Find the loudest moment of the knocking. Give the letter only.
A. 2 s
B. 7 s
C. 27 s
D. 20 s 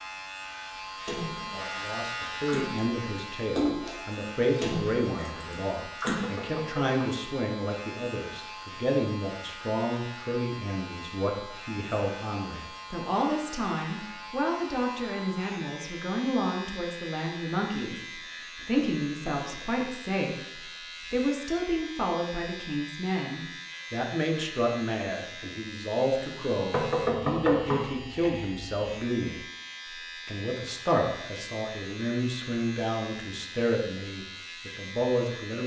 C.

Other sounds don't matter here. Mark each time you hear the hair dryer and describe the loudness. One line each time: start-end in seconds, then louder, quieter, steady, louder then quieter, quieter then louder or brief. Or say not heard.
not heard.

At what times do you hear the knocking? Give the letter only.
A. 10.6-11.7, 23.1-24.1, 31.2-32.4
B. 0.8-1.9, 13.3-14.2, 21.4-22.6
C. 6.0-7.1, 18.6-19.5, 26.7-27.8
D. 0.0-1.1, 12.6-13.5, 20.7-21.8
C.